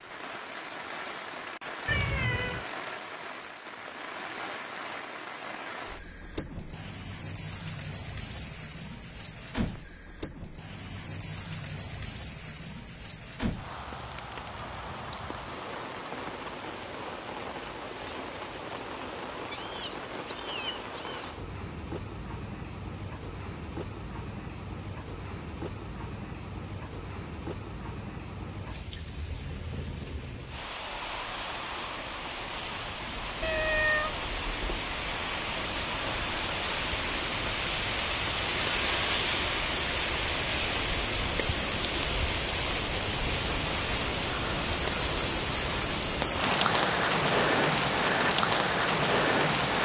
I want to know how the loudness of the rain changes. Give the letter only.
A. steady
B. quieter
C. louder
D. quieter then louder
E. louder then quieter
C.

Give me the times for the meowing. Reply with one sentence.
The meowing can be heard from 1.9 to 2.6 s, from 19.5 to 21.4 s and from 33.4 to 34.9 s.